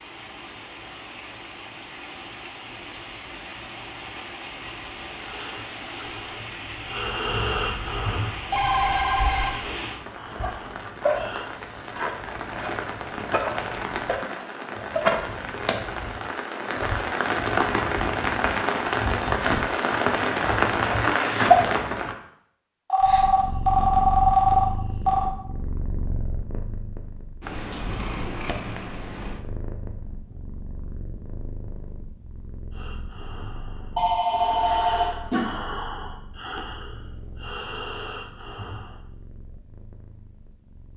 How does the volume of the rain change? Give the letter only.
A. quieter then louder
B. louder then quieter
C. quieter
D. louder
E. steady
D.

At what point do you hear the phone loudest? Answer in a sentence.
The volume of the phone peaks at 24 seconds.